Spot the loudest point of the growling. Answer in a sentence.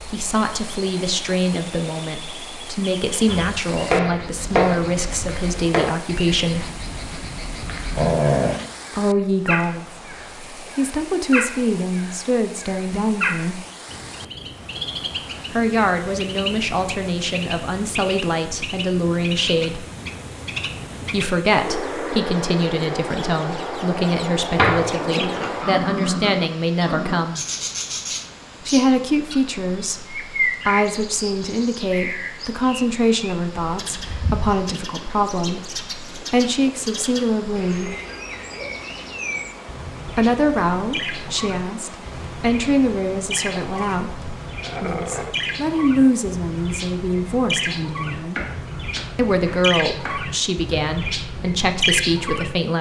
The volume of the growling peaks at 8 seconds.